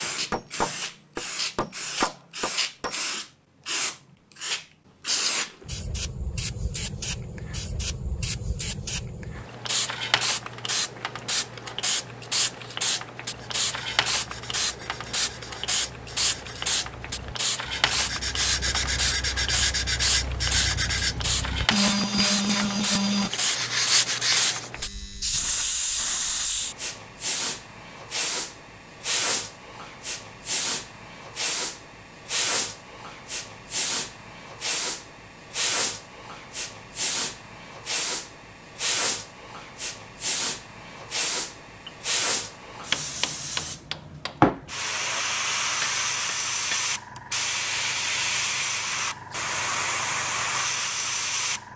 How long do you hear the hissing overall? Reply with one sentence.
You can hear the hissing for 52 seconds altogether.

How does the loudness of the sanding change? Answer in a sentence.
The volume of the sanding goes up.